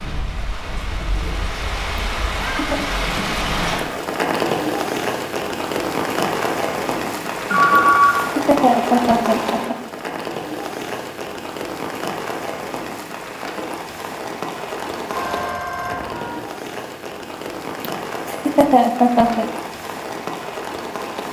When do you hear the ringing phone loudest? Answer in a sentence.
The volume of the ringing phone peaks at 8 seconds.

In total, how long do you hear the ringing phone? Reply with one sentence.
The ringing phone can be heard for 2 seconds in total.